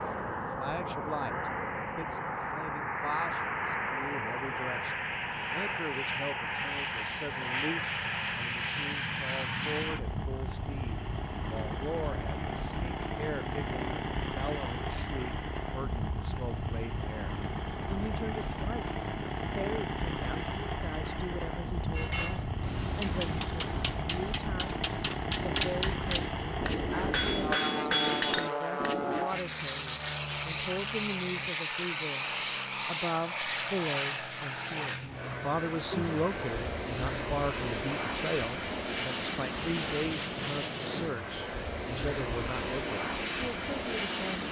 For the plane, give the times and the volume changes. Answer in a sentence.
You can hear the plane from 0.0 to 44.4 s, at a steady volume.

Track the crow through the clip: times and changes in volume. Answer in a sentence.
You can't hear the crow here.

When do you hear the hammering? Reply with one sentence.
You can hear the hammering from 21.9 to 29.3 s.